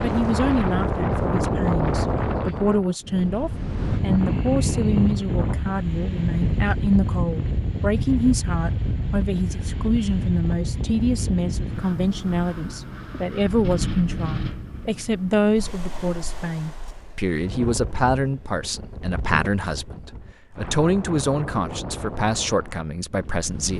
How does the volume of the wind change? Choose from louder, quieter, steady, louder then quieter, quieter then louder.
quieter.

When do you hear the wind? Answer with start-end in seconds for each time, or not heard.
0.0-23.7.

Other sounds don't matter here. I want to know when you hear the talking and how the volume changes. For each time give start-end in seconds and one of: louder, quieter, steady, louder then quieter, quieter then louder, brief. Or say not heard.
0.0-23.7 steady.